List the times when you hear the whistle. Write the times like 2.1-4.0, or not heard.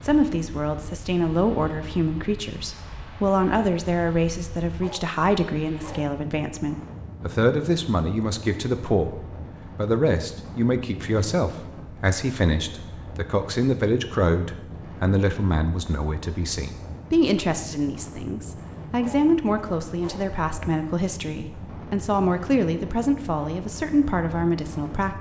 not heard.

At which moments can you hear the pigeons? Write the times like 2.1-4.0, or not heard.
not heard.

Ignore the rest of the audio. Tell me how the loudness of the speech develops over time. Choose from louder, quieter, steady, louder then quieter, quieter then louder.
steady.